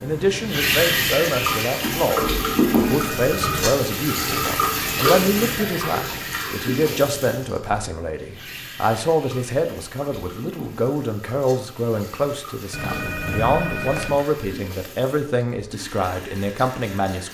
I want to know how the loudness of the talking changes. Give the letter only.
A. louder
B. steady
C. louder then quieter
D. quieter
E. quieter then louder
B.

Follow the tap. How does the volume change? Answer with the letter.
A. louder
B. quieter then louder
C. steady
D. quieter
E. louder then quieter
D.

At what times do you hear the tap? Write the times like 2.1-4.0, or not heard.
0.0-17.3.